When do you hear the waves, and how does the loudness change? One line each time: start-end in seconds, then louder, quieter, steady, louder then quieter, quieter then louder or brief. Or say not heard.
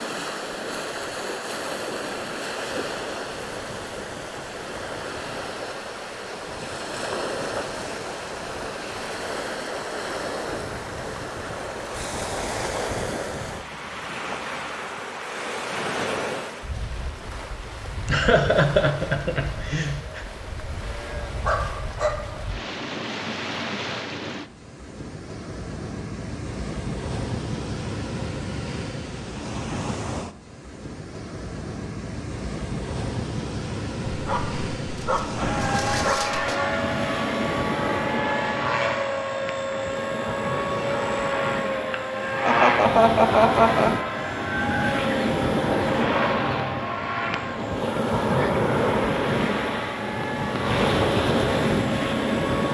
0.0-52.7 louder.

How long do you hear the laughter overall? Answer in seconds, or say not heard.
4 s.